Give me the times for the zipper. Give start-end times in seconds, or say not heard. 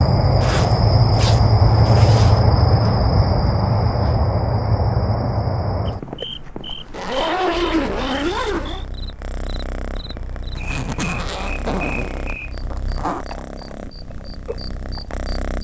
0.4-2.4, 6.8-8.8, 10.6-13.2.